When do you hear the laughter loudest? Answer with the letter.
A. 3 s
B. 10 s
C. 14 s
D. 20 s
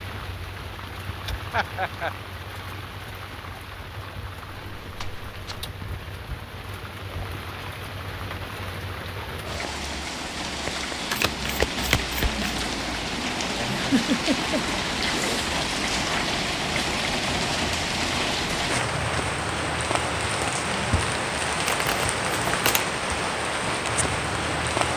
C.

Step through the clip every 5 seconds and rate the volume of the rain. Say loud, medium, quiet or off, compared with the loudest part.
quiet, medium, loud, loud, loud.